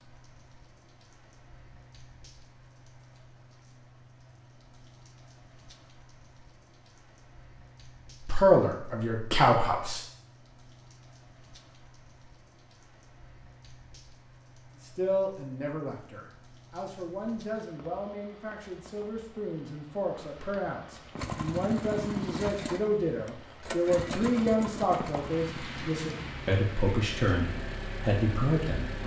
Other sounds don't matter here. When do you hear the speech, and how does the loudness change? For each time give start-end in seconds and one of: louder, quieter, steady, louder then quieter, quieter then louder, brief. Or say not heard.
8.2-10.1 brief
14.8-29.0 louder.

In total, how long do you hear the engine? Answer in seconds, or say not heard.
8 s.